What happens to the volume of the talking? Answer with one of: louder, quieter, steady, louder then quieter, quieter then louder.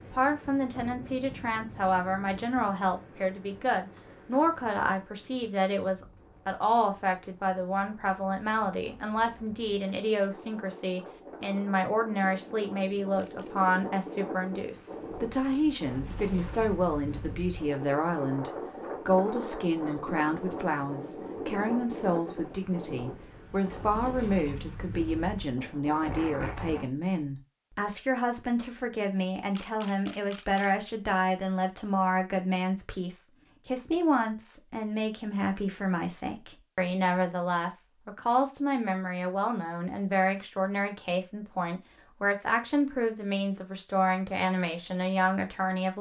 steady.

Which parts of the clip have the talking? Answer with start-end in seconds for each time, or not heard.
0.0-45.9.